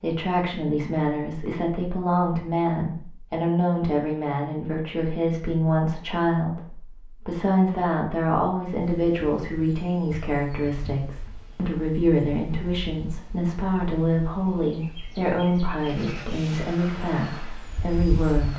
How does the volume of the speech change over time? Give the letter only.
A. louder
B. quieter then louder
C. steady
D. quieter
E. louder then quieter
C.